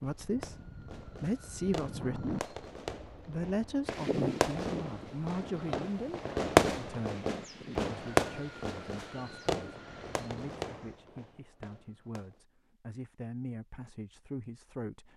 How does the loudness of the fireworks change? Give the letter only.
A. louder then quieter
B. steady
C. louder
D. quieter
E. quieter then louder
A.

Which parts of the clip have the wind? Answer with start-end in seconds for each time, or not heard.
0.1-11.0.